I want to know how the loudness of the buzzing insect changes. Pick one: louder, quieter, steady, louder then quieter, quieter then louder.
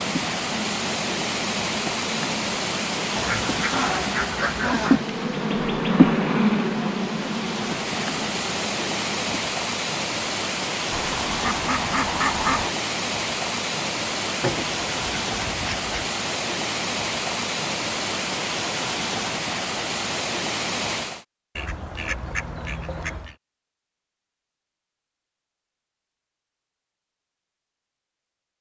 louder then quieter.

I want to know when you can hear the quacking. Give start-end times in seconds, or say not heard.
3.1-5.0, 10.9-12.8, 14.4-16.1, 21.6-23.4.